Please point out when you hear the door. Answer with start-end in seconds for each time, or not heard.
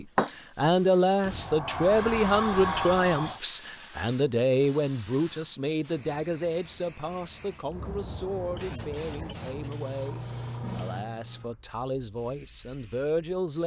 1.2-3.4.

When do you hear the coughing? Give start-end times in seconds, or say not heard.
not heard.